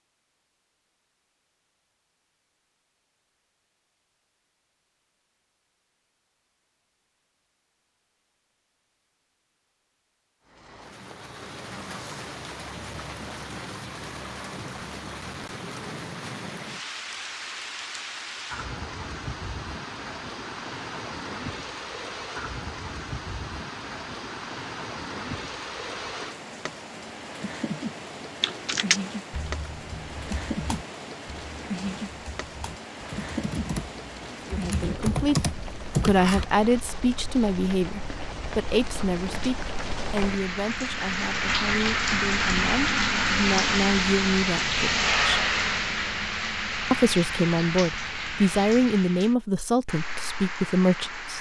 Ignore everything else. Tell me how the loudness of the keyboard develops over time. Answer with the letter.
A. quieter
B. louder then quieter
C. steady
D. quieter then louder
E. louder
D.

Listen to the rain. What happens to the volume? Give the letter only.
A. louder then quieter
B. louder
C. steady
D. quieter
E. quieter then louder
B.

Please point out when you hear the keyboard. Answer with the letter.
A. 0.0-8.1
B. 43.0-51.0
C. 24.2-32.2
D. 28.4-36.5
D.